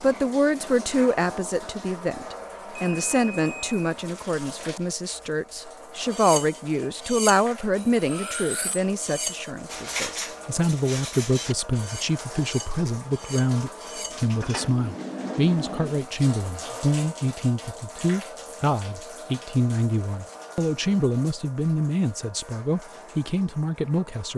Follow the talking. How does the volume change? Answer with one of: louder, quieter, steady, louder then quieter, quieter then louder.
steady.